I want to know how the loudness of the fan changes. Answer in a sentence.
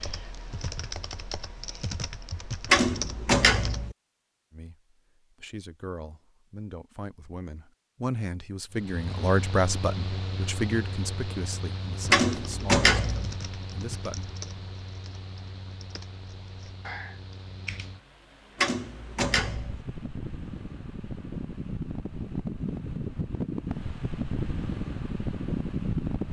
The loudness of the fan goes down, then up.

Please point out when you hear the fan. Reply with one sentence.
The fan can be heard from 8.7 to 26.2 s.